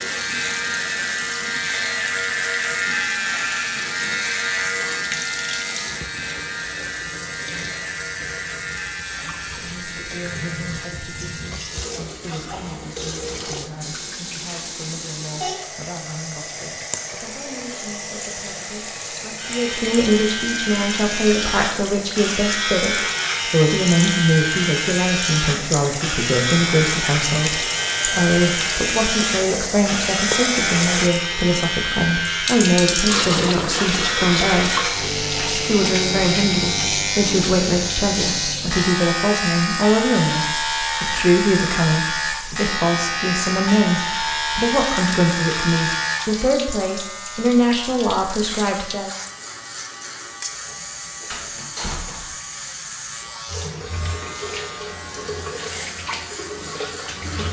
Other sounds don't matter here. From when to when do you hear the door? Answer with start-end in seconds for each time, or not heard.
51.3-52.4.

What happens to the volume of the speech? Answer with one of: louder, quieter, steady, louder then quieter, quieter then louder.
louder.